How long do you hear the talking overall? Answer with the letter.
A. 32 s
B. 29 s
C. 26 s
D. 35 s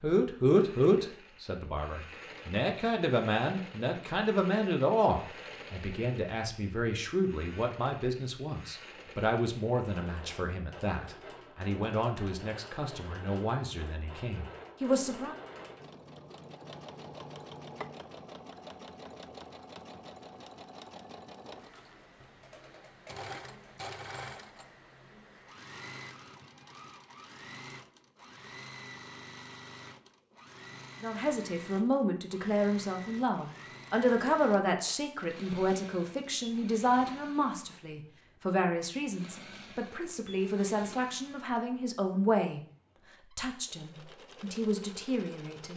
B.